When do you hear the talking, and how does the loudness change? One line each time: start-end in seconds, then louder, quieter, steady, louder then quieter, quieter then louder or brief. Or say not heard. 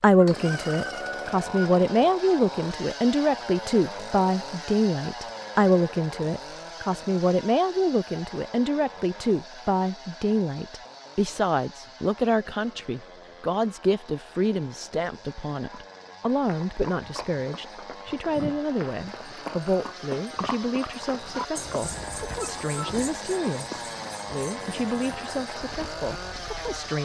0.0-27.0 quieter.